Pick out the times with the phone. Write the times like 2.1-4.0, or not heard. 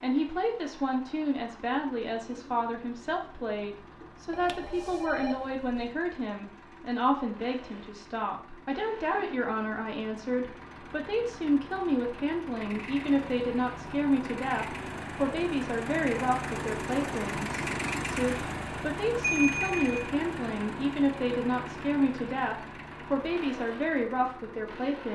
4.3-5.9, 19.2-20.1.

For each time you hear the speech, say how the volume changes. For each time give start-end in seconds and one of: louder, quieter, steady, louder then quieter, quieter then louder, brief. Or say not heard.
0.0-25.1 steady.